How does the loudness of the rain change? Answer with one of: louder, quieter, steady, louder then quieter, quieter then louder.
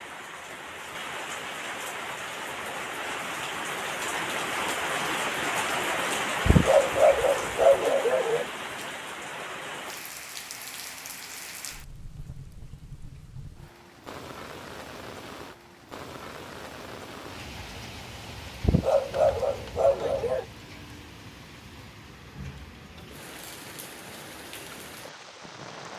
quieter.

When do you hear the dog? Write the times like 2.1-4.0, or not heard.
6.5-8.4, 18.6-20.4.